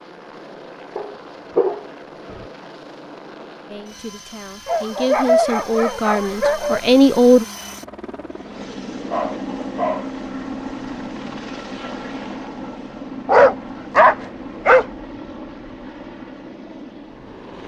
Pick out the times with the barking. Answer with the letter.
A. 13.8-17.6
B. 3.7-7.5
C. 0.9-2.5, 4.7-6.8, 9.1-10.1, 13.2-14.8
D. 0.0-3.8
C.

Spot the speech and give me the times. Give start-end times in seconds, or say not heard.
3.7-7.5.